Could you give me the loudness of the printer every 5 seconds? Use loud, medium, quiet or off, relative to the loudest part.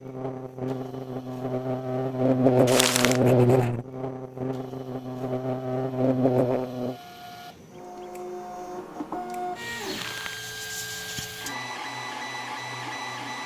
quiet, loud, loud.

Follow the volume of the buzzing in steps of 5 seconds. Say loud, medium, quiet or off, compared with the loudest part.
loud, loud, off.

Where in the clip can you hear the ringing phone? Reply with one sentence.
You can't hear the ringing phone here.